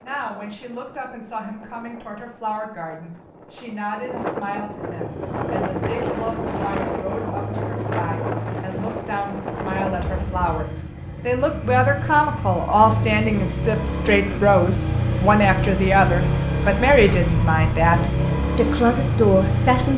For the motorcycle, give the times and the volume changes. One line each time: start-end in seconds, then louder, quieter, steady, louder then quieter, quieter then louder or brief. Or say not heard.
4.9-19.9 louder.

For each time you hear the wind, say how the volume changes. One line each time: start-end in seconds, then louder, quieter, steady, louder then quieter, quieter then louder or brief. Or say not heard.
0.0-10.6 louder.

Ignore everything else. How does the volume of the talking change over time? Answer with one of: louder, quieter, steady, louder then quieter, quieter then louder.
louder.